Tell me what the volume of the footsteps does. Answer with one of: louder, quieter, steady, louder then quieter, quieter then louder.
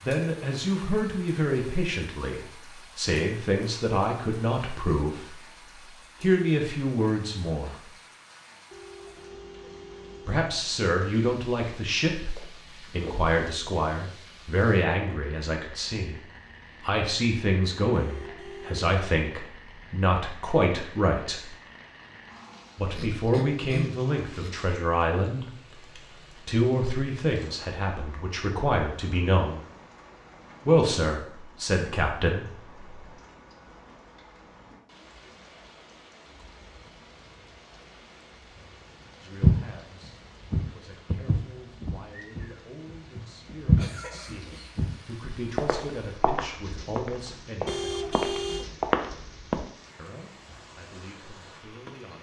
quieter then louder.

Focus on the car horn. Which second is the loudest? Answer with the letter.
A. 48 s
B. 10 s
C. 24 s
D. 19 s
A.